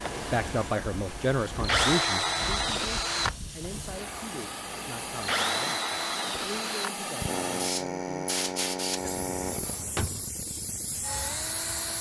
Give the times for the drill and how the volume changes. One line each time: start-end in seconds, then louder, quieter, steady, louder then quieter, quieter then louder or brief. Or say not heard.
0.0-11.9 quieter.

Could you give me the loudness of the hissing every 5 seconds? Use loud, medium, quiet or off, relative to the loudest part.
medium, loud, loud.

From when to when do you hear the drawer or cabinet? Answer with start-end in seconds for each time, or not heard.
9.2-10.3.